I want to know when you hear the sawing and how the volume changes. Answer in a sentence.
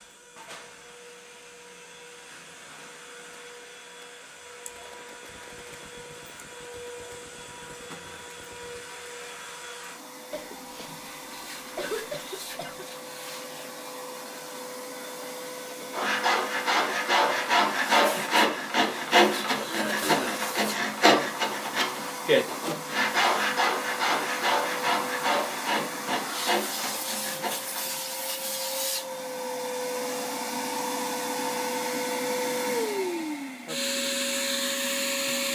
The sawing can be heard from 15.9 to 27.9 s, getting quieter.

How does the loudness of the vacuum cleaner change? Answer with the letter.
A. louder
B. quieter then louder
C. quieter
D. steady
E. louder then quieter
A.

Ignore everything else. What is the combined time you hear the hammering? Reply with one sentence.
You can't hear the hammering here.